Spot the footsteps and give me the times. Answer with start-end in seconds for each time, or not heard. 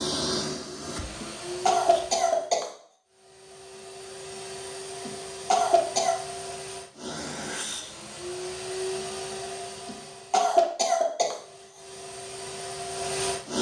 not heard.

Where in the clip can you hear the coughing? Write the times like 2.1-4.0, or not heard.
1.2-2.7, 5.0-6.2, 9.8-11.8.